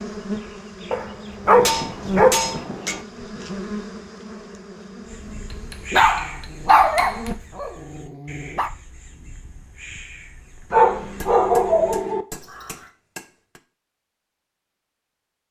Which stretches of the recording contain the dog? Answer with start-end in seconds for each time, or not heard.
0.9-2.6, 5.9-8.7, 10.7-12.2.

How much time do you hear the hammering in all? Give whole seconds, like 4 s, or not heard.
6 s.